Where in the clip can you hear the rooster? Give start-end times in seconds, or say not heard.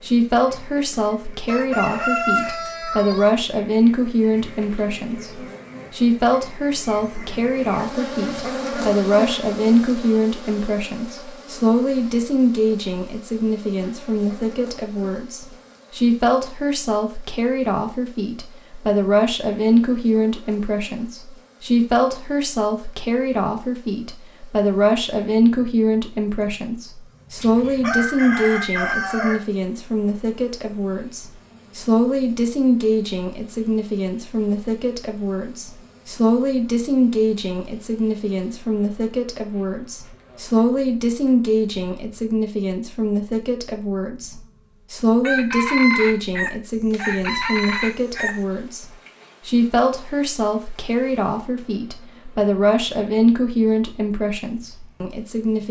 1.4-3.4, 27.4-29.4, 45.2-48.4.